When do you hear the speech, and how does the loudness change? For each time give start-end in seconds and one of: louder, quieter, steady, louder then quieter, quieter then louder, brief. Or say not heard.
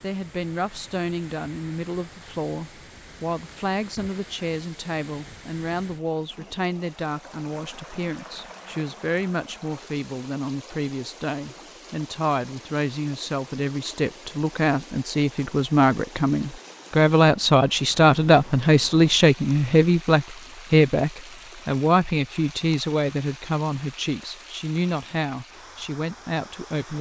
0.0-26.9 louder then quieter.